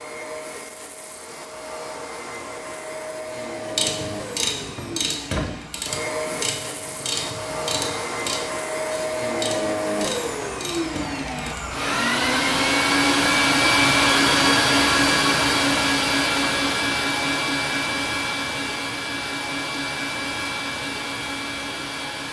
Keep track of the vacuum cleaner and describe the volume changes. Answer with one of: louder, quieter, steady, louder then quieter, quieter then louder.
louder then quieter.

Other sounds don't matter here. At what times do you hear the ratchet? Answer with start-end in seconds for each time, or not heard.
3.5-11.7.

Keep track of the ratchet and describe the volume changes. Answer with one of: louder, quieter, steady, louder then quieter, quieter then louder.
quieter.